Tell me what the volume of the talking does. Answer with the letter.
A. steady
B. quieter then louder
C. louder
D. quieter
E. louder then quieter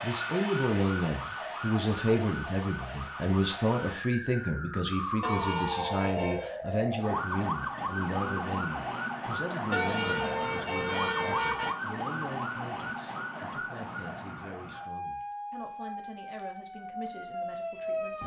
D.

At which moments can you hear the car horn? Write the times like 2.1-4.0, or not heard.
5.2-6.5, 9.7-11.8.